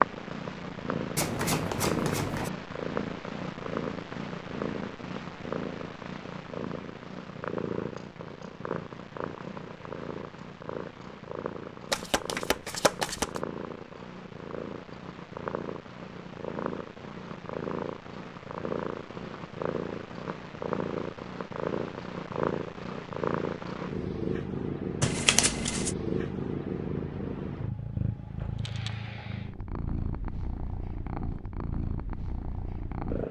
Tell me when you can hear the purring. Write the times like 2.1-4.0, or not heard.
0.0-33.2.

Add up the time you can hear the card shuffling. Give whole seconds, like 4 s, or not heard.
4 s.